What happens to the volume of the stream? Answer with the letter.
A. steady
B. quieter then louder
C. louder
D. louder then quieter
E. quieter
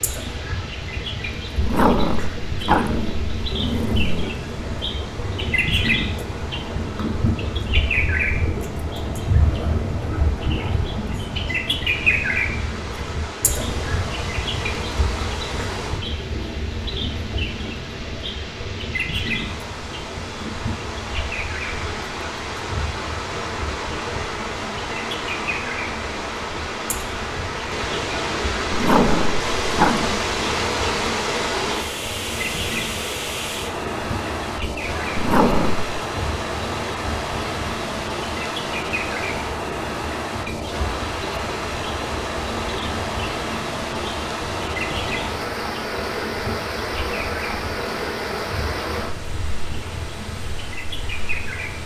C.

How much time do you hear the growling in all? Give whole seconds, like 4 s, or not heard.
5 s.